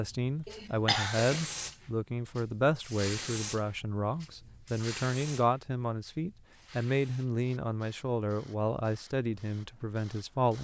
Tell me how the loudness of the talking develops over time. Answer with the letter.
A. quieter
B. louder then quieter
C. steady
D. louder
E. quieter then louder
C.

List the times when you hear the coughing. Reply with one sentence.
The coughing can be heard from 0.5 to 1.5 s.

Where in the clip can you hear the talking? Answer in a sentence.
The talking can be heard from 0.0 to 10.5 s.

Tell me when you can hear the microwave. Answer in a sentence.
The microwave can't be heard in this clip.